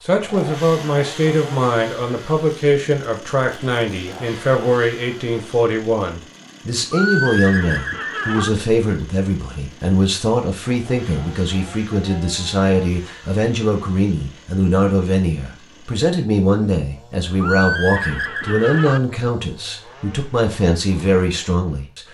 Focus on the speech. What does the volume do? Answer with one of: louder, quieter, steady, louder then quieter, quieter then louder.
steady.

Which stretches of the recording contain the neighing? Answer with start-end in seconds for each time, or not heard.
6.9-8.5, 17.4-19.0.